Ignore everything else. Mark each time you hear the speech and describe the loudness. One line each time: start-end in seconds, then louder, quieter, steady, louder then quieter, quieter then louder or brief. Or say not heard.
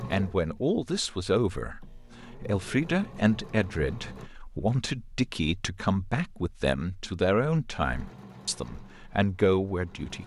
0.0-10.2 steady.